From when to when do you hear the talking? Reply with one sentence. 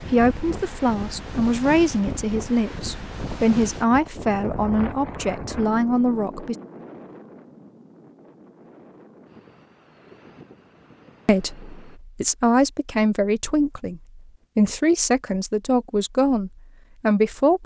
You can hear the talking from 0.0 to 6.5 s and from 11.2 to 17.6 s.